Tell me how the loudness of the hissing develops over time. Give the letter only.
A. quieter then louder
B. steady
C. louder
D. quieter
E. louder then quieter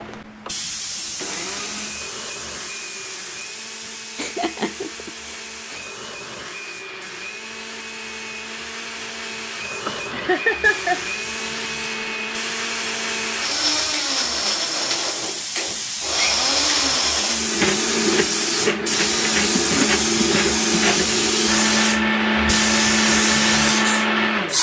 A.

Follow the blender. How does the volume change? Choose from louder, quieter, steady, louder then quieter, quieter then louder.
louder.